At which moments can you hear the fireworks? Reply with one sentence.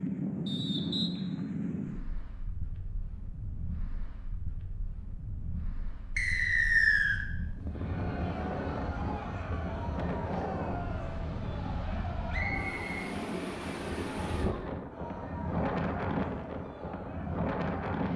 The fireworks can't be heard in this clip.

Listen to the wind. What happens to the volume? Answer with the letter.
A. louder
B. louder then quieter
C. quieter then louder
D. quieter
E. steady
C.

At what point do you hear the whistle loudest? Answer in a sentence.
The volume of the whistle peaks at 7 seconds.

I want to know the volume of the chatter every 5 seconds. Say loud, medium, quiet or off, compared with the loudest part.
off, loud, loud, loud.